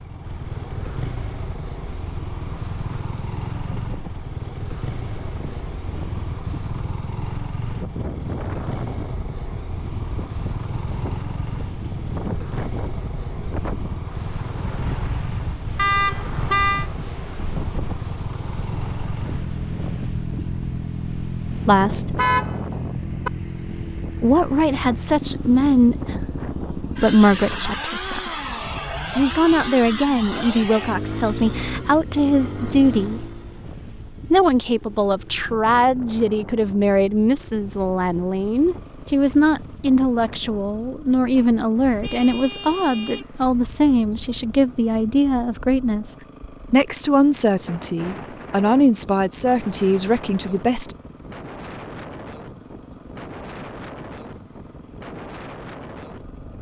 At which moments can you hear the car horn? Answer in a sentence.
The car horn can be heard from 15.8 to 16.9 s, from 22.0 to 23.3 s and from 42.0 to 43.2 s.